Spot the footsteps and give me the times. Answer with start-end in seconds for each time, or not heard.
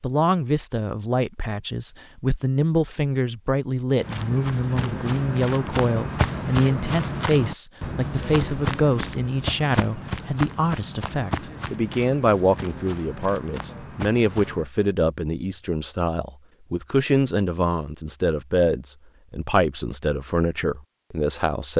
4.0-14.7.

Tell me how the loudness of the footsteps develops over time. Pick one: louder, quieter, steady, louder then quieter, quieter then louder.
quieter.